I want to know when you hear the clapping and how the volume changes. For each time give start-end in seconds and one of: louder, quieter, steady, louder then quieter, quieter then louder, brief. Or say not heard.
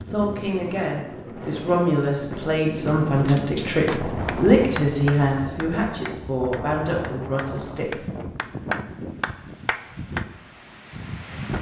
3.2-10.2 quieter then louder.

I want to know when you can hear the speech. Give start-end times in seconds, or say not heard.
0.0-8.0.